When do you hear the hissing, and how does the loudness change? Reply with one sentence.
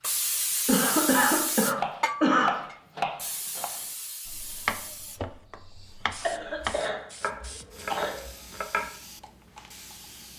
The hissing can be heard from 0.0 to 10.3 s, getting quieter.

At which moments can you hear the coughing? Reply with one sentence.
You can hear the coughing from 0.7 to 2.6 s and from 6.2 to 8.3 s.